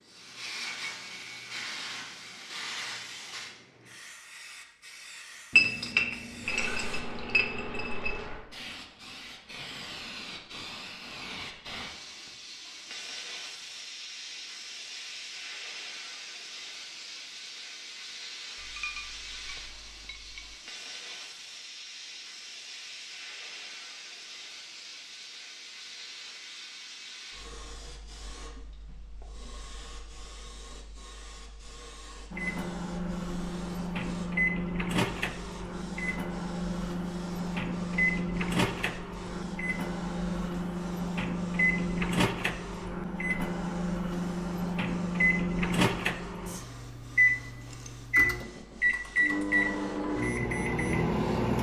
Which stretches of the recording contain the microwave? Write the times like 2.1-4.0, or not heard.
32.3-51.5.